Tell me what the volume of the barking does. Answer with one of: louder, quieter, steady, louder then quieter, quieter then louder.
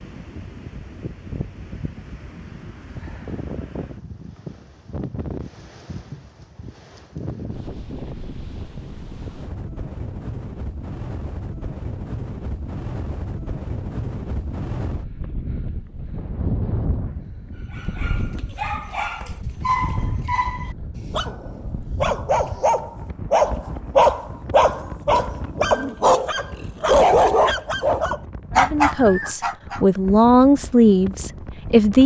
louder.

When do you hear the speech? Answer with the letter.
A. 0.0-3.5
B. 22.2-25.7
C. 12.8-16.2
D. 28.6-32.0
D.